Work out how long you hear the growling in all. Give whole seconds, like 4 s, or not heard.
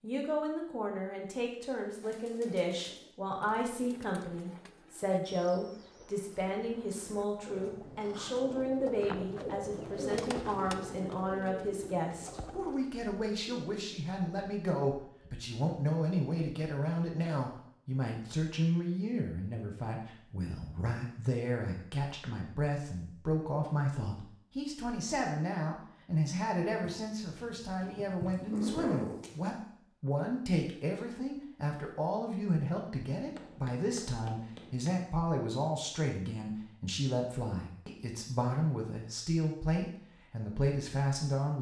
4 s.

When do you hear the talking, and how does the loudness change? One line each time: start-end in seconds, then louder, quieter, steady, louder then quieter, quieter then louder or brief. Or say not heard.
0.0-41.5 steady.